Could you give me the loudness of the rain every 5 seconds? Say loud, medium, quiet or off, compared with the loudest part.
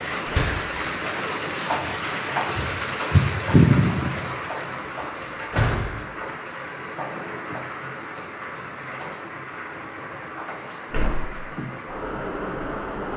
loud, medium, medium.